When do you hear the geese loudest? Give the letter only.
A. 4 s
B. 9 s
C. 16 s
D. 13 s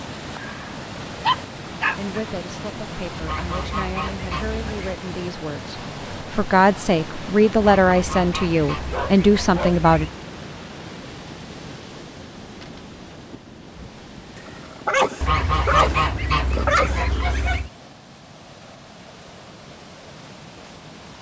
C.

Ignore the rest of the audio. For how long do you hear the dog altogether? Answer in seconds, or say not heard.
5 s.